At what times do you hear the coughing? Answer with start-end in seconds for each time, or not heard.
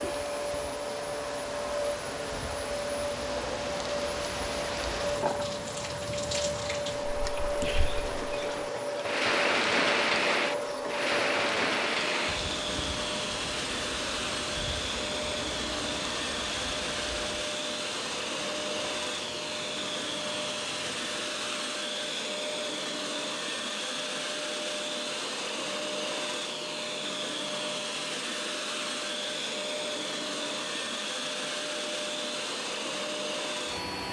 not heard.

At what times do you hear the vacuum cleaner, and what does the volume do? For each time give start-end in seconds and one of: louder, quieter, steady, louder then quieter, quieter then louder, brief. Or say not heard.
0.0-34.0 steady.